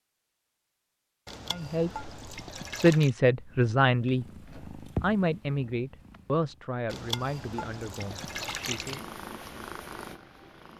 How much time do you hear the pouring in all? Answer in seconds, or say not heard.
4 s.